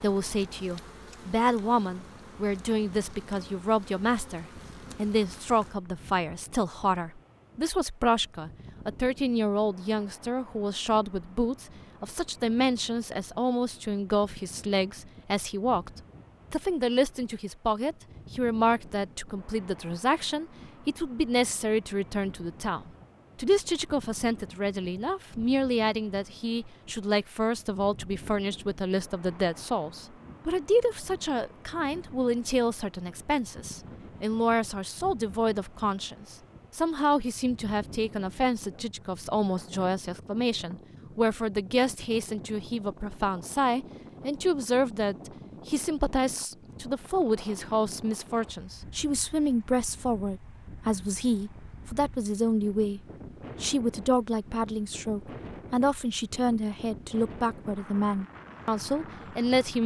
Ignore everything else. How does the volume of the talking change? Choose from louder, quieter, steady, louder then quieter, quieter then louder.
steady.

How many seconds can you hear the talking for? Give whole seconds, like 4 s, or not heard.
59 s.